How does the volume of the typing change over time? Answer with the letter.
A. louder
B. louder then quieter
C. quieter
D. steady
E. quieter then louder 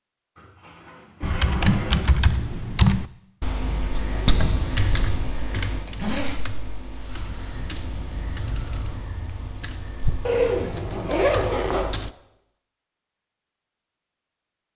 C.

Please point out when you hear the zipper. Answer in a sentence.
You can hear the zipper from 0.3 to 2.1 s, from 5.7 to 6.4 s and from 10.2 to 11.9 s.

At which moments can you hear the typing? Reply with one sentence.
The typing can be heard from 1.2 to 12.1 s.